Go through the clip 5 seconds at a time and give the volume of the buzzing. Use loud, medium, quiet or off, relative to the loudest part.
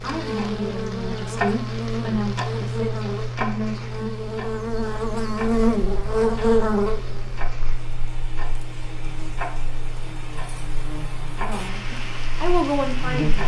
medium, loud, medium.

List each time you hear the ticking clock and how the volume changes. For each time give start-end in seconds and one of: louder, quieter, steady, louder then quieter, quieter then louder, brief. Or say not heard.
0.0-13.4 quieter.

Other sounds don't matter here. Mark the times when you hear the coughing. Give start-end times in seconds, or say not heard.
not heard.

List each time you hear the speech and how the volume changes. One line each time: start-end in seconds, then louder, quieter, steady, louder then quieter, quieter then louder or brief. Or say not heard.
0.0-4.2 quieter then louder
11.3-13.4 brief.